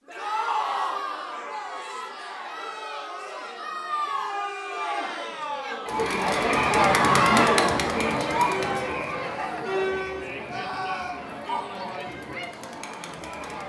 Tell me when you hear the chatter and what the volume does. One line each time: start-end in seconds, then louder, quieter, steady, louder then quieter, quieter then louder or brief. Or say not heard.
0.1-13.6 louder then quieter.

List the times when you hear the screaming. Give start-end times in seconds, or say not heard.
0.1-1.0, 7.0-7.5, 10.4-11.2.